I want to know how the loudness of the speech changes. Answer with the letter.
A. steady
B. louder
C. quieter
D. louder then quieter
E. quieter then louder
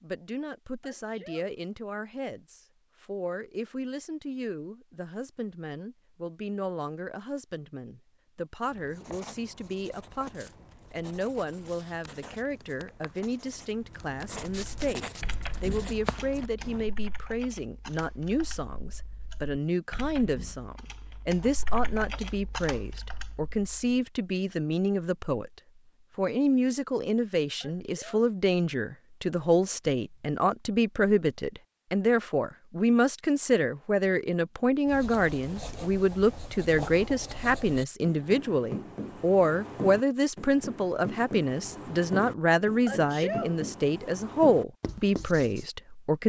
B.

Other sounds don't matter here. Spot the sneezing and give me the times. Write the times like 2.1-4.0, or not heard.
0.8-1.6, 27.6-28.4, 42.9-43.6.